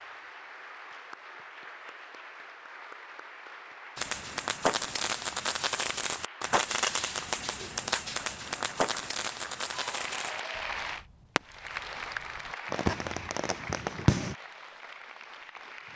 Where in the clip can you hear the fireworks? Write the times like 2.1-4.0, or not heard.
4.0-14.3.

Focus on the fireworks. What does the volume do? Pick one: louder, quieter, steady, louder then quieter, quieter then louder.
quieter then louder.